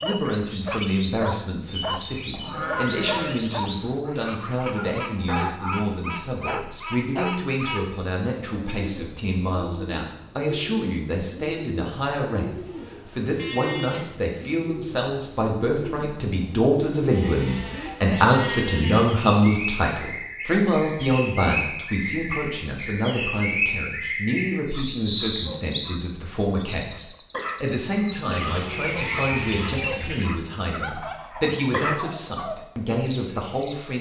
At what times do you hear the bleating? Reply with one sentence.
You can hear the bleating from 2.3 to 3.4 s, from 13.3 to 14.1 s, from 17.1 to 19.1 s and from 28.2 to 29.9 s.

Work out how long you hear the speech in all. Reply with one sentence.
The speech can be heard for 34 seconds in total.